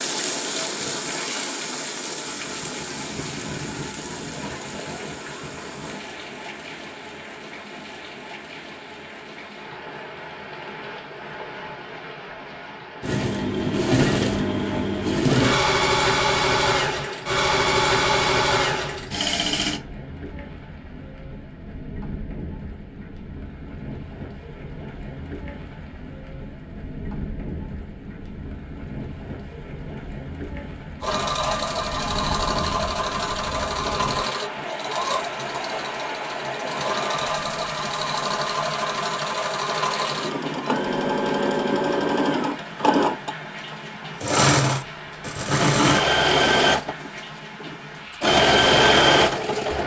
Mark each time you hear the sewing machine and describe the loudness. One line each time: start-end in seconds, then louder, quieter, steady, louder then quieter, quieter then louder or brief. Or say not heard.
13.0-19.8 steady
31.0-49.8 louder.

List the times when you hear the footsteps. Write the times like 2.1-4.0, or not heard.
not heard.